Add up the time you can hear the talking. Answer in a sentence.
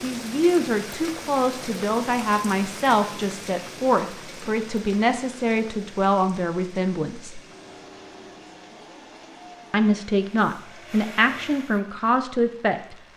You can hear the talking for 11 seconds altogether.